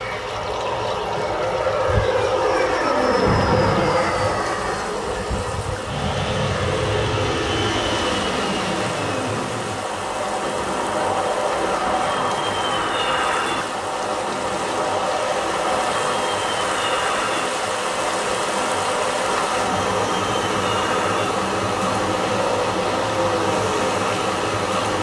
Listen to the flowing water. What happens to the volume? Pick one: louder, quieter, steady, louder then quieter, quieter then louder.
louder.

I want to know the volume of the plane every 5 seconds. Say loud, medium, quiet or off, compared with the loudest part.
loud, loud, loud, medium, medium.